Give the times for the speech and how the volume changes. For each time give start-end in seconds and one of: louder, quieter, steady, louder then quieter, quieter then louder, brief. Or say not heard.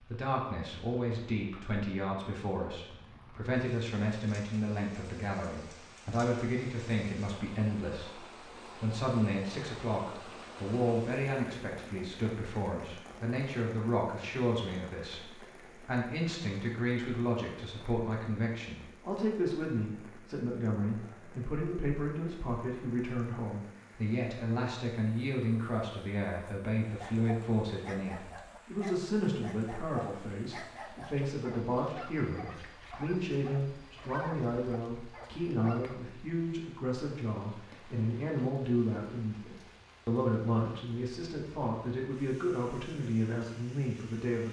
0.0-44.4 steady.